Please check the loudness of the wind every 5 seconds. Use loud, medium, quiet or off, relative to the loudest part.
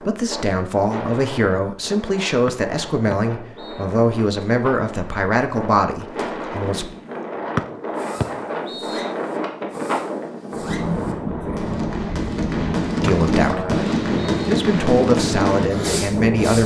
medium, loud, loud, loud.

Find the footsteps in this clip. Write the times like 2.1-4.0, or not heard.
not heard.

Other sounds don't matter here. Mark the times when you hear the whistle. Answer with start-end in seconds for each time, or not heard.
2.5-3.9, 7.5-9.1, 13.1-14.5.